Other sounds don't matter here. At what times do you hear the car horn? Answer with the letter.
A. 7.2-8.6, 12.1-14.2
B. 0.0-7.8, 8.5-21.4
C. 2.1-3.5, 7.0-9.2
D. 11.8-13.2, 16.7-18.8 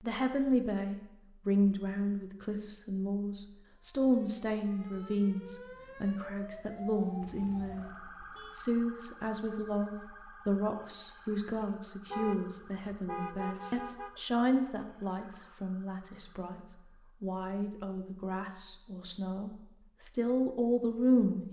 A.